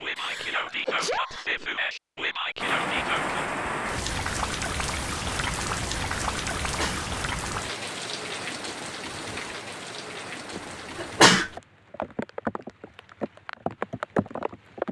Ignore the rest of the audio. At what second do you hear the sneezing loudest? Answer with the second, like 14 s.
11 s.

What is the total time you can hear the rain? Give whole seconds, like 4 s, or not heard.
12 s.